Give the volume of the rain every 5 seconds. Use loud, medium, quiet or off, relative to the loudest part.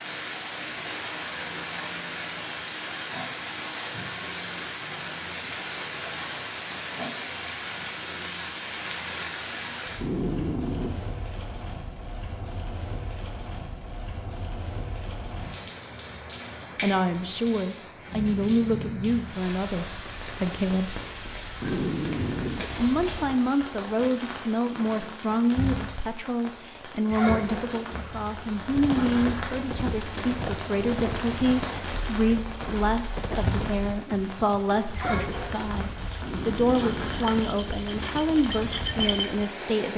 loud, loud, medium, loud, loud, loud, loud, loud.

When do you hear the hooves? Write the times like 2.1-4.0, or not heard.
28.6-39.5.